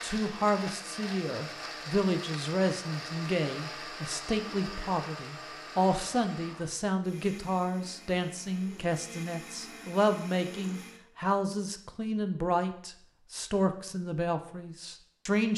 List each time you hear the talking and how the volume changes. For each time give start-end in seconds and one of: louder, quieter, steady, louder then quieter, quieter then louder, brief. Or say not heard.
0.0-15.5 steady.